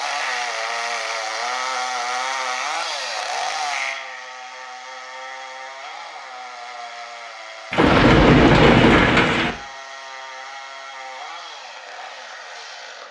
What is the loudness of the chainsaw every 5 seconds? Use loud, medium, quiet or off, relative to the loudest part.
loud, medium, medium.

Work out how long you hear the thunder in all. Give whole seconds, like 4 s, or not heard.
2 s.